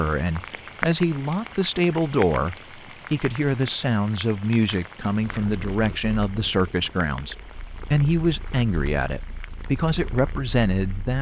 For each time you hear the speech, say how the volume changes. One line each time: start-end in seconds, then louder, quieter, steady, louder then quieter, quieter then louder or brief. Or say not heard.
0.0-11.1 steady.